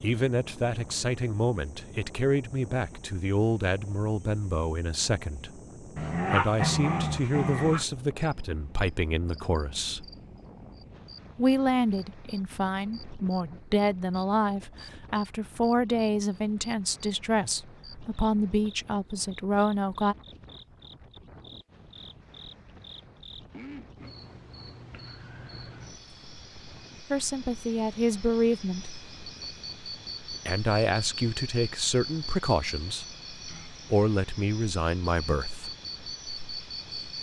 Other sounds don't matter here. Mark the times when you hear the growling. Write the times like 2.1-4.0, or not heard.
6.0-7.8.